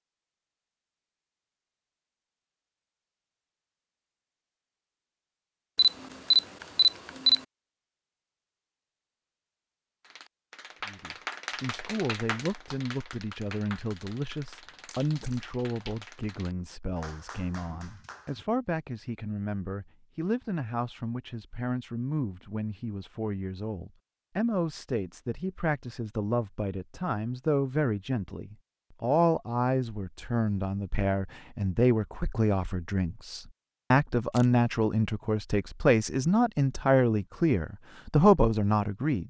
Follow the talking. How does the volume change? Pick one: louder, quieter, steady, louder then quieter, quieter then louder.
louder.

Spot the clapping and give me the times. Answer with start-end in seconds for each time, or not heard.
10.0-18.4.